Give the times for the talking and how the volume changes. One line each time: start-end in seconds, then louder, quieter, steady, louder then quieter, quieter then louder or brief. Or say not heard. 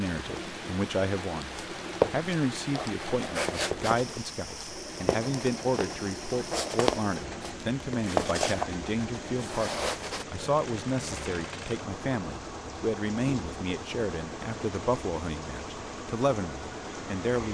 0.0-17.4 steady.